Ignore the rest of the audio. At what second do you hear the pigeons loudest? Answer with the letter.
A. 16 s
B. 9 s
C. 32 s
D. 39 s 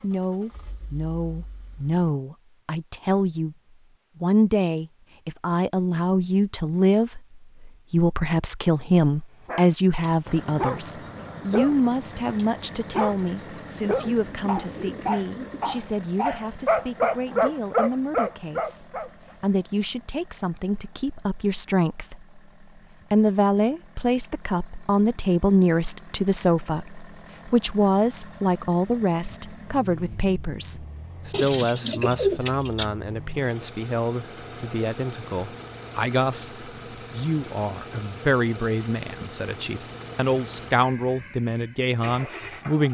C.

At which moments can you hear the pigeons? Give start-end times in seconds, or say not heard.
13.8-15.8, 31.3-33.0.